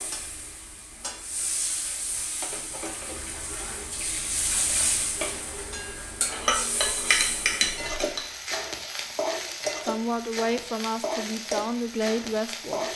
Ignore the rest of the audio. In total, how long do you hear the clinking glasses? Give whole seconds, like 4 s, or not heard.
2 s.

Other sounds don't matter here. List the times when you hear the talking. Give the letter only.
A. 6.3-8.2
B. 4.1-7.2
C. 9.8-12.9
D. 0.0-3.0
C.